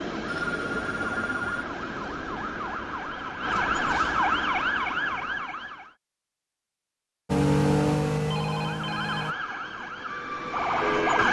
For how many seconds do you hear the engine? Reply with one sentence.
You can hear the engine for 2 seconds altogether.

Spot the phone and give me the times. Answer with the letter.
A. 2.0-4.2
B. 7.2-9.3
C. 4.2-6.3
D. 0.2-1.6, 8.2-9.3
D.